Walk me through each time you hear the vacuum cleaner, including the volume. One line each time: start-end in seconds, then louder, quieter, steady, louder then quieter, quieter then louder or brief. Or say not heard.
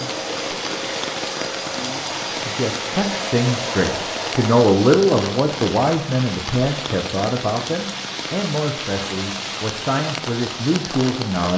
0.0-4.7 steady.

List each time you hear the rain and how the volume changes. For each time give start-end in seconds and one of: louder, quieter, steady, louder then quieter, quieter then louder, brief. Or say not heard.
0.0-11.5 steady.